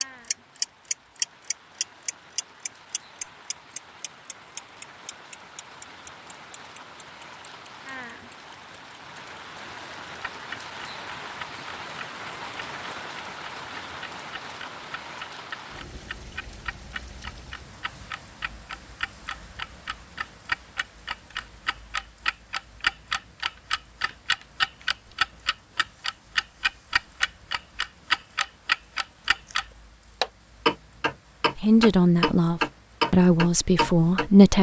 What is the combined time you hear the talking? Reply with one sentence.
The talking can be heard for 3 seconds in total.